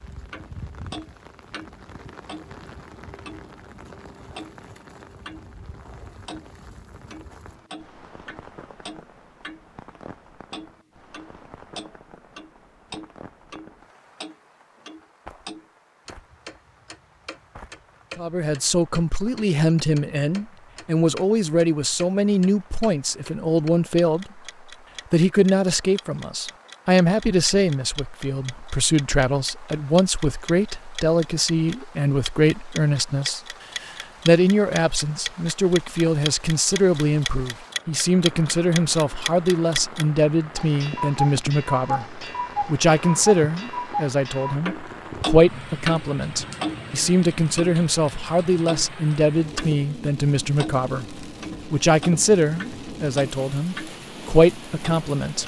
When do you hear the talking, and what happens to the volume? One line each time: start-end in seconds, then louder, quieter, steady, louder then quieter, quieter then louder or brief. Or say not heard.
18.1-24.4 steady
25.1-55.4 steady.